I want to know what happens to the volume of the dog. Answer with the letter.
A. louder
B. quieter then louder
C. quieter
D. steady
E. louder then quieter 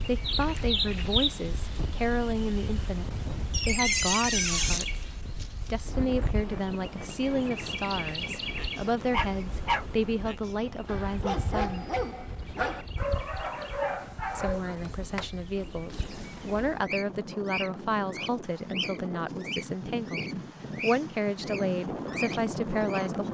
B.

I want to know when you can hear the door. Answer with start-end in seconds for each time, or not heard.
3.5-4.9, 14.7-15.3, 15.9-16.9.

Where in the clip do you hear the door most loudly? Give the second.
4 s.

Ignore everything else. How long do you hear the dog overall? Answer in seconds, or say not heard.
6 s.